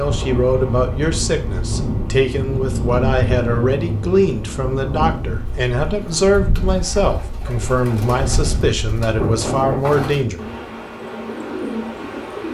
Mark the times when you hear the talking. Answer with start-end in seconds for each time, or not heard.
0.0-10.4.